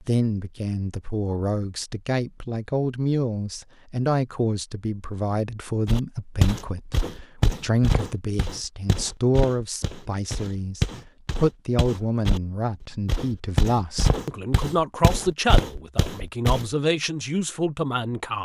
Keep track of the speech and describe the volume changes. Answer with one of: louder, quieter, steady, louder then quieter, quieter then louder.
steady.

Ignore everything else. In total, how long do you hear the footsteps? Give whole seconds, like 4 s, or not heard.
11 s.